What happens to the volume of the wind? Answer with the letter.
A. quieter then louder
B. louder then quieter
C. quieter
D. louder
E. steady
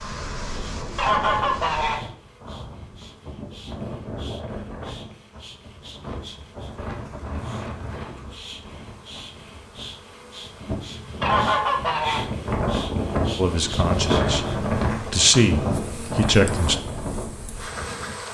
D.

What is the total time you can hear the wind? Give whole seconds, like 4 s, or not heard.
18 s.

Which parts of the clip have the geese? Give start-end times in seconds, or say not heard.
0.9-2.0, 11.2-12.3.